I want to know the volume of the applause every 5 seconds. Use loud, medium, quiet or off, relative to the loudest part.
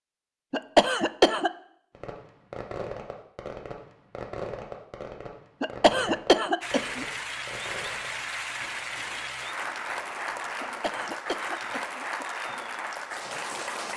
off, loud, loud.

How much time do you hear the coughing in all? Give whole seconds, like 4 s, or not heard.
4 s.